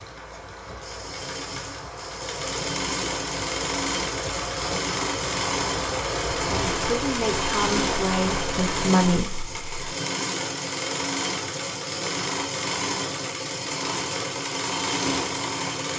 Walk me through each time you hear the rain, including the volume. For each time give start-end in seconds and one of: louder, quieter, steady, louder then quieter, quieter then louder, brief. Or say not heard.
0.0-8.9 louder.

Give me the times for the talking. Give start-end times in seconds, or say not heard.
6.5-9.9.